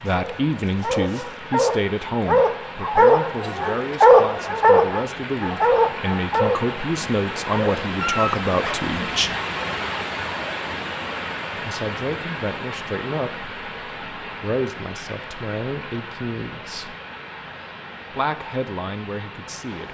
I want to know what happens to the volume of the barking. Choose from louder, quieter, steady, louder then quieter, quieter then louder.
louder then quieter.